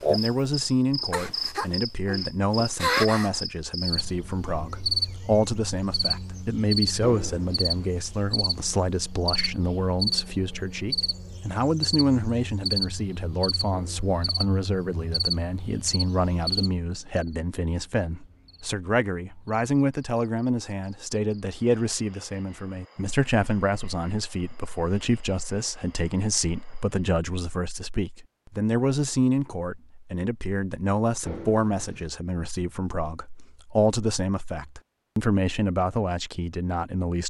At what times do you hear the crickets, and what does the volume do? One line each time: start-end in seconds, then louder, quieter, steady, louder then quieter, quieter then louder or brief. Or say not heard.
0.0-27.2 quieter.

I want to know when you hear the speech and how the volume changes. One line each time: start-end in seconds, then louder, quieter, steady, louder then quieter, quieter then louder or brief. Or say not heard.
0.1-37.2 steady.